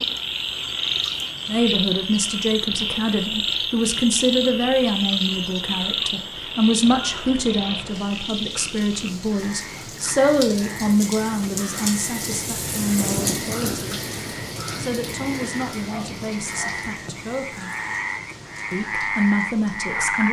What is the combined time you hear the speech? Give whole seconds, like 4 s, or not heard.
17 s.